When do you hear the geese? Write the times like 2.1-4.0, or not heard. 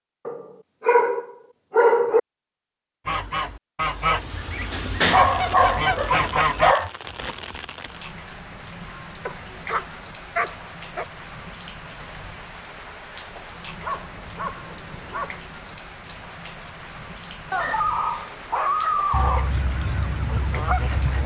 3.0-6.8, 19.1-21.2.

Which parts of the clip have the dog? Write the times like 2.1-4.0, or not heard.
0.2-2.2, 4.7-6.9, 9.2-11.1, 13.8-15.4, 17.5-19.5.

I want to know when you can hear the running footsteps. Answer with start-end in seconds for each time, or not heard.
not heard.